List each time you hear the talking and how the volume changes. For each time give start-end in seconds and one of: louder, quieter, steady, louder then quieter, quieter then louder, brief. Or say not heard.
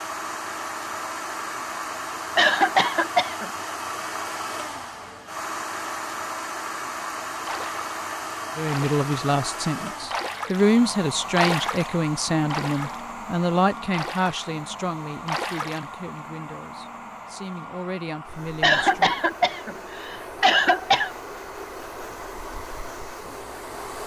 8.6-19.1 quieter.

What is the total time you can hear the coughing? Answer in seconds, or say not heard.
4 s.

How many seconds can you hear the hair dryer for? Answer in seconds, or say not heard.
24 s.